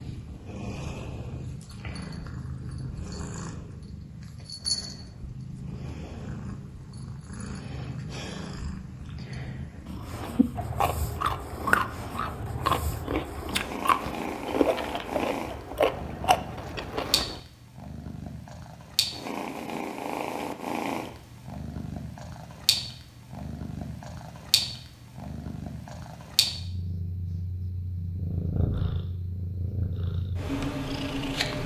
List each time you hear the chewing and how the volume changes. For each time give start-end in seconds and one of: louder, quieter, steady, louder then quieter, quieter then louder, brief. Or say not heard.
10.2-17.4 steady.